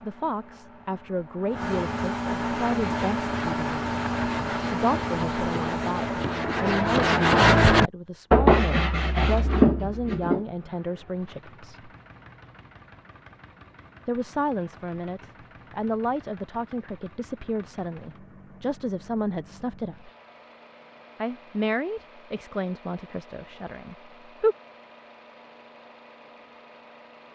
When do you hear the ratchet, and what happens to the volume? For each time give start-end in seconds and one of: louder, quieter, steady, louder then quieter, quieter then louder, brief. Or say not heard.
not heard.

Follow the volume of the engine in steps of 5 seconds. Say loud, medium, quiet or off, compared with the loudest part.
loud, loud, quiet, quiet, quiet, quiet.